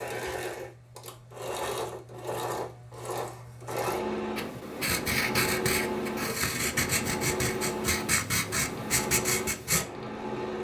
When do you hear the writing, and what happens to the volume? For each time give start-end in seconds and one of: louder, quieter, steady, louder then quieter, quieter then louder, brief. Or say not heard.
4.3-9.8 steady.